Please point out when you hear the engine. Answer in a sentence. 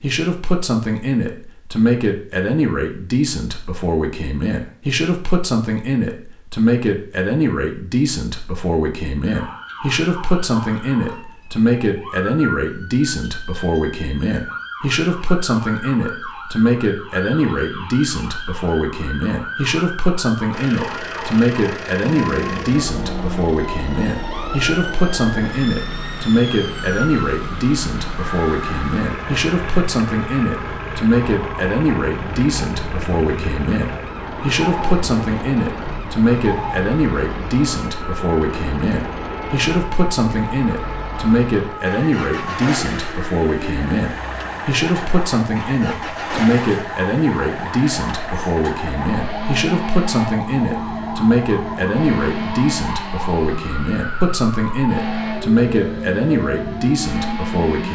You can hear the engine from 20.5 to 57.9 s.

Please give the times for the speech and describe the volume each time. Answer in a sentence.
You can hear the speech from 0.0 to 57.9 s, at a steady volume.